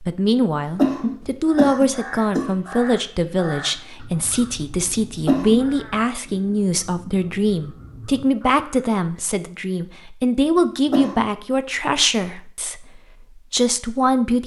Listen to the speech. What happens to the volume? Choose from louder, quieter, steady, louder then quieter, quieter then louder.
steady.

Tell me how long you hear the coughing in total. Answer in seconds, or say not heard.
3 s.